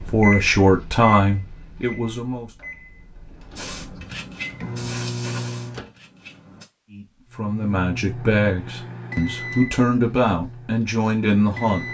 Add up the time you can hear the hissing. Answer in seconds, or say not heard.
3 s.